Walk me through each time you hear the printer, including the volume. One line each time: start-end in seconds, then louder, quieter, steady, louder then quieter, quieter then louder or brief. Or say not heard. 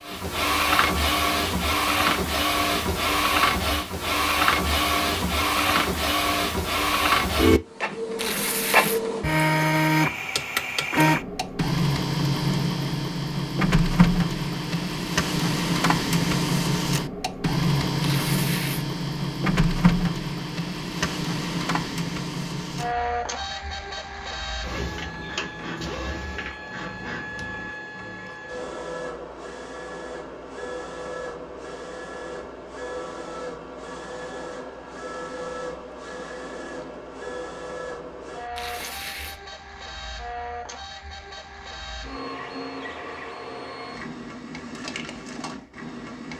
0.0-46.3 quieter.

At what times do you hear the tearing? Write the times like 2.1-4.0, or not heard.
8.2-9.0, 18.0-18.9, 38.5-39.4.